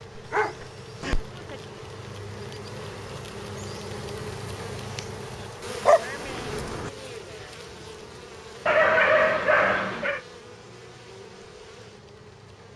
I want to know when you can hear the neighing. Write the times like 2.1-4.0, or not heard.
not heard.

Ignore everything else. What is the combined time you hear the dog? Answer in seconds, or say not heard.
4 s.